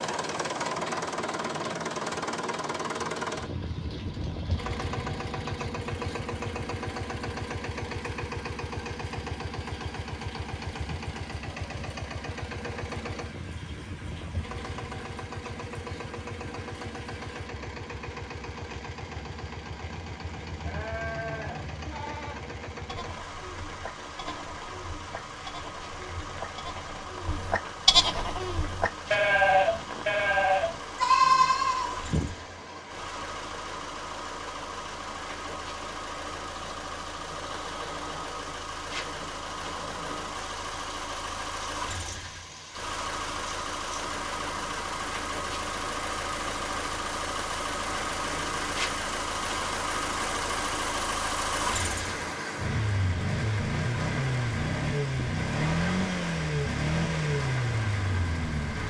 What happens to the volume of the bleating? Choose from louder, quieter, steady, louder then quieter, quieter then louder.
quieter then louder.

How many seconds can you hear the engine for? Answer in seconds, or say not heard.
59 s.